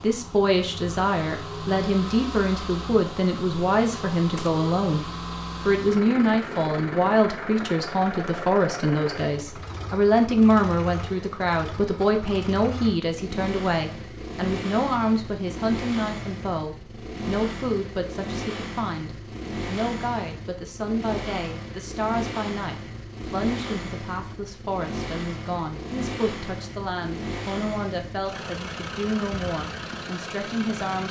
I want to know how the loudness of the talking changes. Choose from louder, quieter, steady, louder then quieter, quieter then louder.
quieter.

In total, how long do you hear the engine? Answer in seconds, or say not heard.
31 s.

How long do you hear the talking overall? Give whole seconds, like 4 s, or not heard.
31 s.